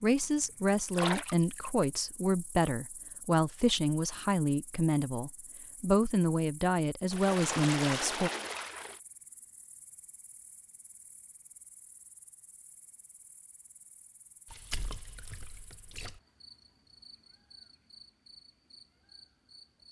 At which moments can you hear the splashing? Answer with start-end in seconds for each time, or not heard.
0.9-1.9, 7.1-9.0, 14.4-16.2.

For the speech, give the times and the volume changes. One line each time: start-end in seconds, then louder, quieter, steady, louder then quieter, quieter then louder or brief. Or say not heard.
0.0-8.3 steady.